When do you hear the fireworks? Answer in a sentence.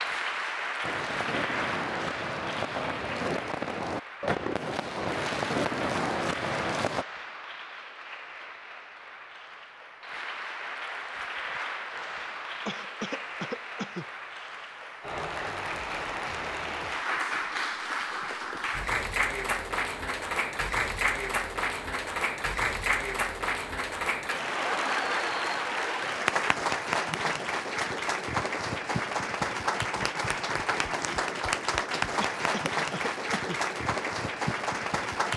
You can hear the fireworks from 0.8 to 7.0 s.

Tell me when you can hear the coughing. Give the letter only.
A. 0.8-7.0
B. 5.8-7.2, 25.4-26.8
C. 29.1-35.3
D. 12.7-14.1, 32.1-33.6
D.